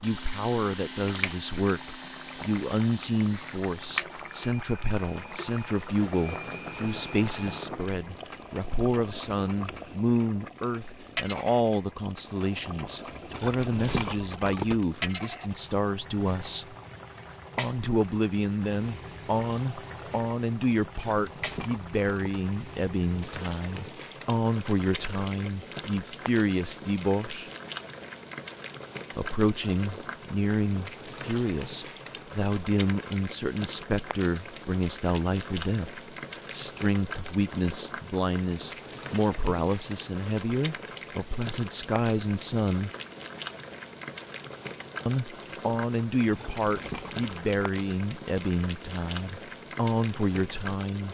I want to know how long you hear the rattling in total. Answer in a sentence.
The rattling can be heard for 4 seconds in total.